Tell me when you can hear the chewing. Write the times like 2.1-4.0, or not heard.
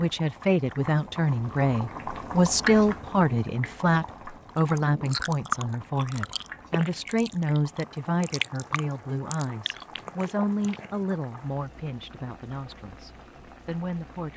4.5-11.1.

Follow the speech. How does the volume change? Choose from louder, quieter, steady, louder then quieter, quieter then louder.
quieter.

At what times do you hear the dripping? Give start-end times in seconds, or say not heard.
not heard.